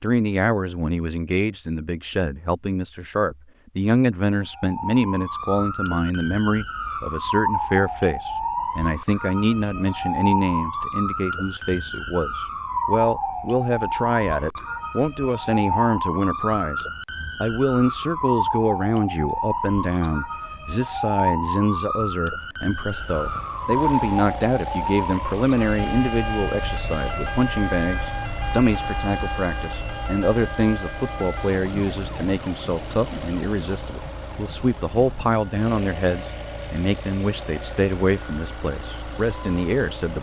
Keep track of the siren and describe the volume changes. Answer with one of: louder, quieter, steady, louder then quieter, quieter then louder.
quieter.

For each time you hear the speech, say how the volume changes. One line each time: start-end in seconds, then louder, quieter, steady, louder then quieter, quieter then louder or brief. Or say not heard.
0.0-40.1 steady.